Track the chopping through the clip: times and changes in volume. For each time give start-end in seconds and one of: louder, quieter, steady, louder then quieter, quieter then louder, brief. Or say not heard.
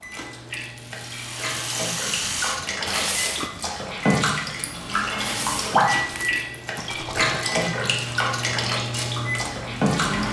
not heard.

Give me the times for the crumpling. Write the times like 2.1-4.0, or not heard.
2.9-3.5, 5.2-6.5.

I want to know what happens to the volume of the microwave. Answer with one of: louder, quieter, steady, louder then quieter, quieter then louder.
louder.